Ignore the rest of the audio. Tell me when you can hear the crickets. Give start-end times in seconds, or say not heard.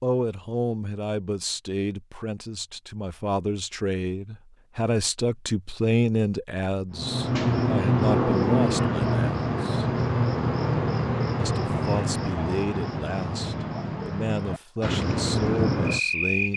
6.9-16.5.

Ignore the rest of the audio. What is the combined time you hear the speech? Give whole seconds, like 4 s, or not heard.
15 s.